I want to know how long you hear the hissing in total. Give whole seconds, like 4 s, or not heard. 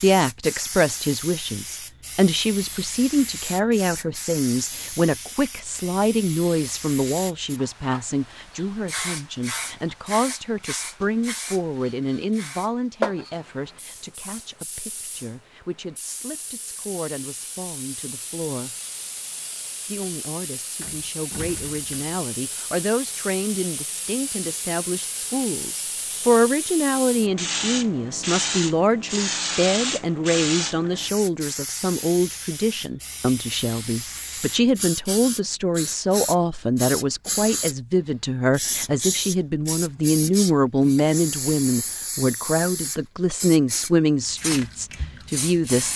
46 s.